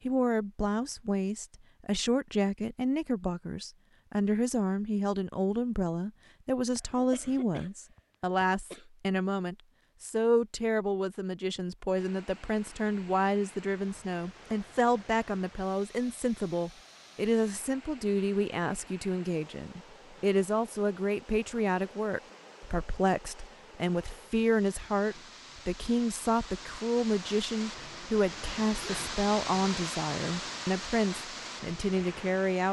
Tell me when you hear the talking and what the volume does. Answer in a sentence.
The talking can be heard from 0.1 to 32.6 s, at a steady volume.